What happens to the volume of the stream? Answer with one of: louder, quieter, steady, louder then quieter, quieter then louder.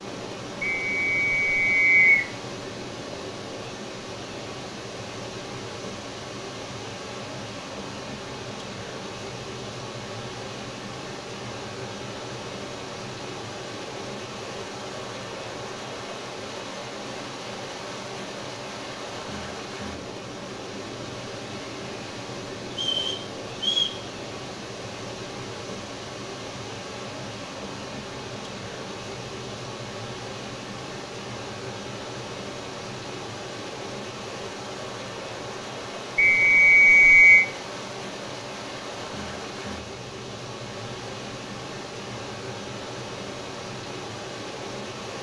steady.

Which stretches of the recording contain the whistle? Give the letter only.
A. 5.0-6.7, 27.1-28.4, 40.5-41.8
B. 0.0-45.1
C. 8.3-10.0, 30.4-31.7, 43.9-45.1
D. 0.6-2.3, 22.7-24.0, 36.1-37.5
D.